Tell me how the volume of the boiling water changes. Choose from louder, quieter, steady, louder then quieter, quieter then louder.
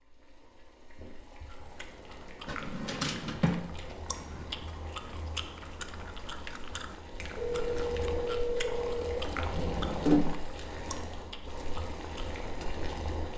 louder.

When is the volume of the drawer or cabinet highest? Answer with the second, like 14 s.
10 s.